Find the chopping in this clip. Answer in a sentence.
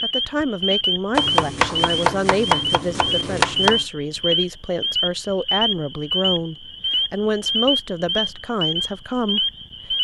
You can hear the chopping from 1.1 to 3.9 s.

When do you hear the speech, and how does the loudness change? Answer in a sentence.
You can hear the speech from 0.0 to 9.9 s, at a steady volume.